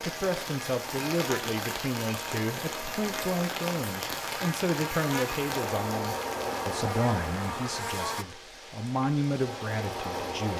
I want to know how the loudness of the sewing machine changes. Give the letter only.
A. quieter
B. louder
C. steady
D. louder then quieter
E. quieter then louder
E.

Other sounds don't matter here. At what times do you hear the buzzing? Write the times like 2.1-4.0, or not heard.
0.0-8.2.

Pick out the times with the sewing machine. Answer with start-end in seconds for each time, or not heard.
5.5-10.5.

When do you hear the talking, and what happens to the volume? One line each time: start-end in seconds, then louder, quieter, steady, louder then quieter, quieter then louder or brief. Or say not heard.
0.0-10.5 steady.